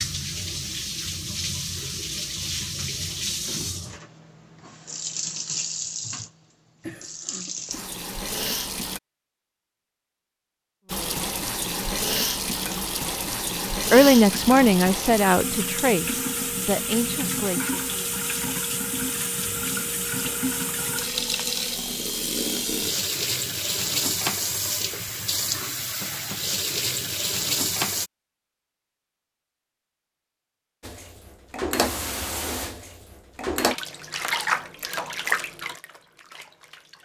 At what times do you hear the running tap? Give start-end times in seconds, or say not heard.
0.0-9.0, 10.8-28.1, 30.8-36.9.